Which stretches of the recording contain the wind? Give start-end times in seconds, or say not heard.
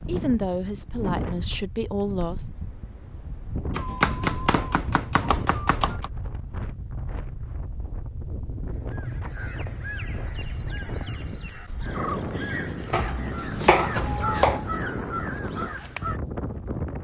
0.0-16.9.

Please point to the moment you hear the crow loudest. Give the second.
14 s.